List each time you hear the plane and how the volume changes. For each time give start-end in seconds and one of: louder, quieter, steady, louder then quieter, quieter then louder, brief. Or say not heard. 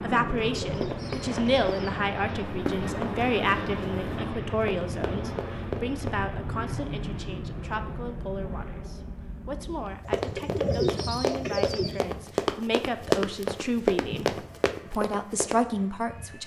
0.0-16.4 quieter.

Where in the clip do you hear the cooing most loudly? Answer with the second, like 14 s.
11 s.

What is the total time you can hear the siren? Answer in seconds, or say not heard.
not heard.